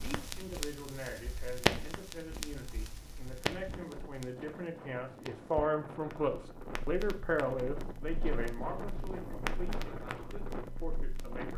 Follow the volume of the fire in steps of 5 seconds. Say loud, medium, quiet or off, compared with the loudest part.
loud, medium, quiet.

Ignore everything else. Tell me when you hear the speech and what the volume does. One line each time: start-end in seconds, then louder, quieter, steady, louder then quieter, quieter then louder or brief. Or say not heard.
0.0-11.5 louder then quieter.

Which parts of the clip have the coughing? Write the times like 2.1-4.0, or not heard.
not heard.